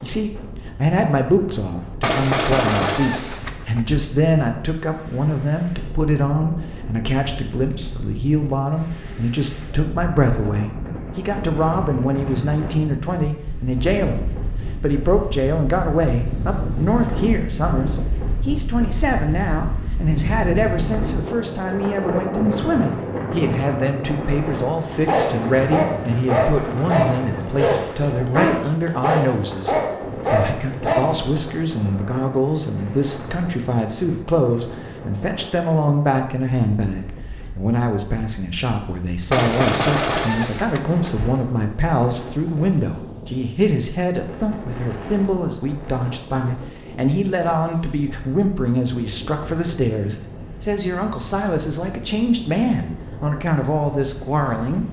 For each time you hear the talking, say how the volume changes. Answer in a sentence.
The talking can be heard from 0.0 to 54.8 s, at a steady volume.